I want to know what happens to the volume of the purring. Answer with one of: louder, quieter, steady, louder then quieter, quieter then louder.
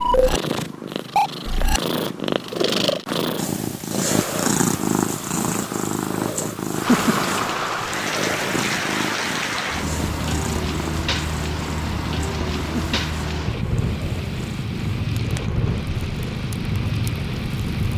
quieter.